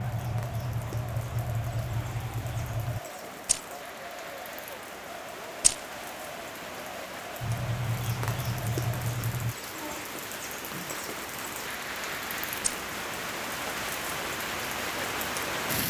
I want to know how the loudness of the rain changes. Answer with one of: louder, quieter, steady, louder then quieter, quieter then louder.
louder.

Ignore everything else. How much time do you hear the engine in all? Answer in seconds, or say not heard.
5 s.